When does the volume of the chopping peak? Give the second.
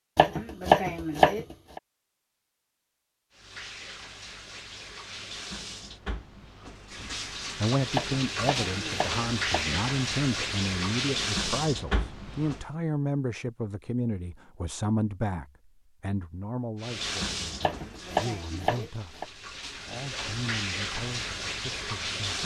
1 s.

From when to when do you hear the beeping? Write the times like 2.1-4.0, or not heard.
not heard.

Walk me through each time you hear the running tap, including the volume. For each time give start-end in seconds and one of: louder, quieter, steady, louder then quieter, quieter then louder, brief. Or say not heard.
3.3-12.7 louder
16.8-22.4 quieter then louder.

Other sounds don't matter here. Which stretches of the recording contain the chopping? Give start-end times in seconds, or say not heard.
0.1-1.8, 7.9-9.7, 17.6-19.2.